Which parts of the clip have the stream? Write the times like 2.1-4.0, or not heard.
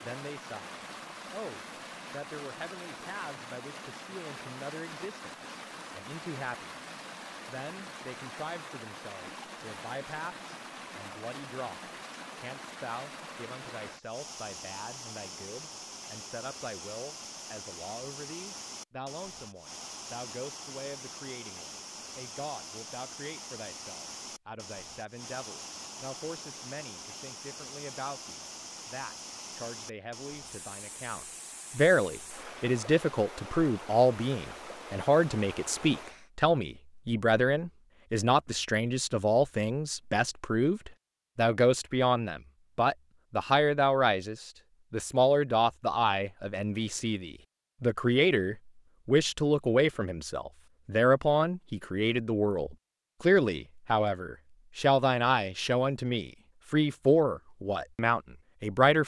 0.0-36.3.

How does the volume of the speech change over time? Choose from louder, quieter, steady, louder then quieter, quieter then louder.
louder.